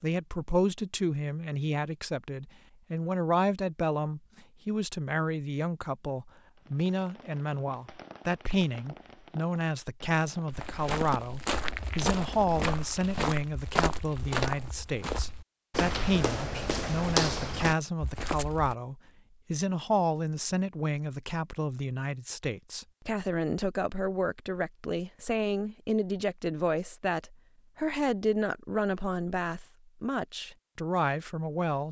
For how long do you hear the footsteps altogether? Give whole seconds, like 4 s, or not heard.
8 s.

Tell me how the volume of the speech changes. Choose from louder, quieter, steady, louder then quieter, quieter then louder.
steady.